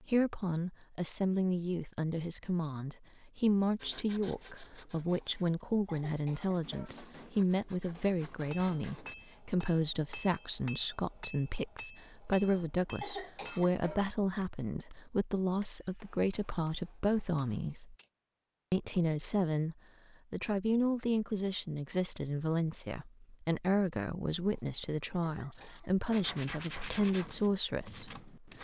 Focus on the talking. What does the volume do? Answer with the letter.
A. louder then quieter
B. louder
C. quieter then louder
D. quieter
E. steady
E.